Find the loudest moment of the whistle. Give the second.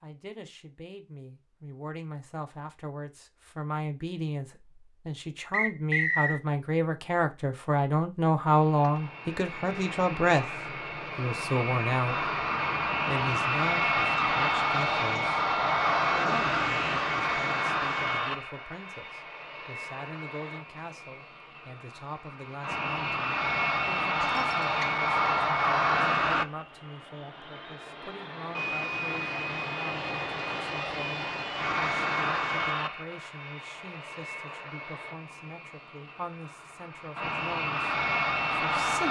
6 s.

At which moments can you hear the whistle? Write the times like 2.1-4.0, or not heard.
5.5-6.4, 24.2-24.9.